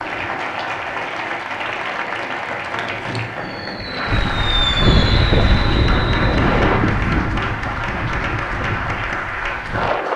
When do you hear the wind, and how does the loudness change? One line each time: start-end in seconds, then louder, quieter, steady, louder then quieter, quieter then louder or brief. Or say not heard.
4.0-10.1 quieter.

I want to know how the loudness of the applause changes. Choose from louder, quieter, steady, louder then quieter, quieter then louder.
steady.